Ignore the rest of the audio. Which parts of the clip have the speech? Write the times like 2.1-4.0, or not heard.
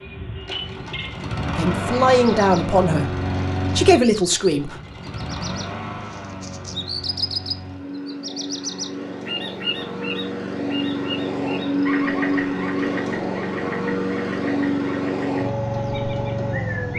1.6-4.8.